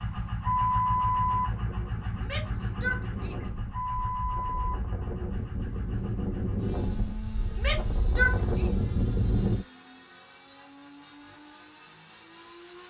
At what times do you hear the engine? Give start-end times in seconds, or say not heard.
0.0-12.8.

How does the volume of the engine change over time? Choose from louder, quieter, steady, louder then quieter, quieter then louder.
quieter.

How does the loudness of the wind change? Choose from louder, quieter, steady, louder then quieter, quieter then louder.
louder.